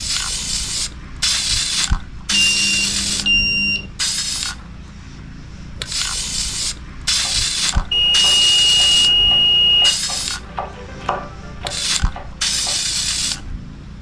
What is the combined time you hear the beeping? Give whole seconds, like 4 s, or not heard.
4 s.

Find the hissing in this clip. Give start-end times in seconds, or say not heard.
0.0-13.9.